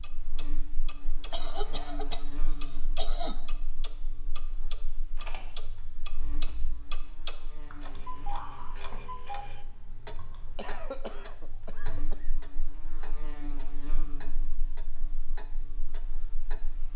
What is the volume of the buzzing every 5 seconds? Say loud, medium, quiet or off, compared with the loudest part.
loud, medium, loud, medium.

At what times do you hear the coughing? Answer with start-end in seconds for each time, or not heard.
1.3-3.4, 10.6-12.3.